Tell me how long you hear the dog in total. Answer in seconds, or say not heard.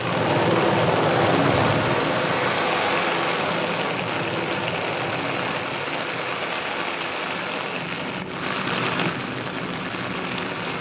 not heard.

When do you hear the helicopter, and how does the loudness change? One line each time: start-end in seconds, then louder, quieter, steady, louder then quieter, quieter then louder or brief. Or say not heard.
0.0-10.7 quieter.